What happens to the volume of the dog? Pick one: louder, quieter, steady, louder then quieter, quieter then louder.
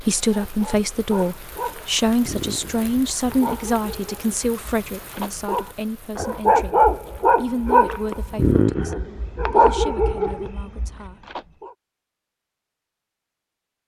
louder.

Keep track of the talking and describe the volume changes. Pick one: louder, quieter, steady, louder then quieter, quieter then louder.
quieter.